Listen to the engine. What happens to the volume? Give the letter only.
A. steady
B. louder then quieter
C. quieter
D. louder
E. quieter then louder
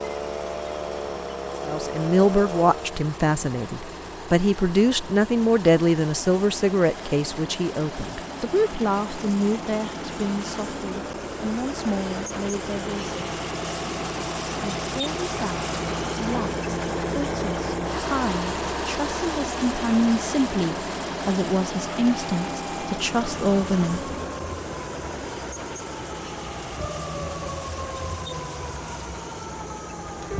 B.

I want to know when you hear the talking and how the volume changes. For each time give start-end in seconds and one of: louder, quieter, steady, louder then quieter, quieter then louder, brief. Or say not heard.
1.6-13.2 quieter
14.8-24.0 louder.